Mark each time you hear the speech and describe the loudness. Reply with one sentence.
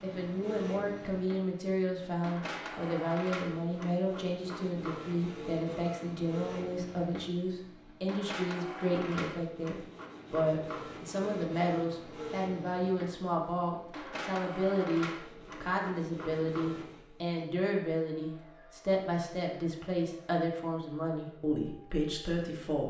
You can hear the speech from 0.0 to 22.8 s, at a steady volume.